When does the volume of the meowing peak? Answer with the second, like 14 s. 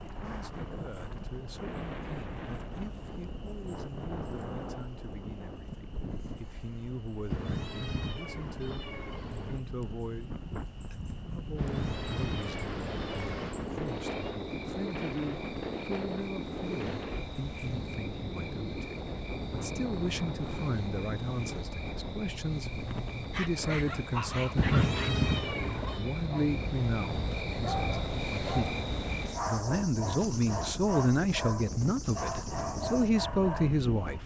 25 s.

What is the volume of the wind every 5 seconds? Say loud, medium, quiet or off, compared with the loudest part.
loud, medium, loud, loud, loud, loud, loud.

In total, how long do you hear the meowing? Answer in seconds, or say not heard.
7 s.